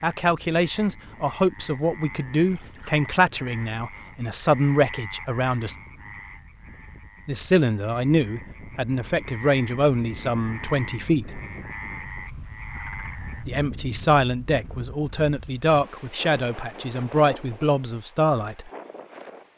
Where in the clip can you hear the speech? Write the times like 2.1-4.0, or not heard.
0.0-5.8, 7.2-11.4, 13.4-18.7.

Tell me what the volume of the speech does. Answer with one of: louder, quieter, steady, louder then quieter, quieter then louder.
steady.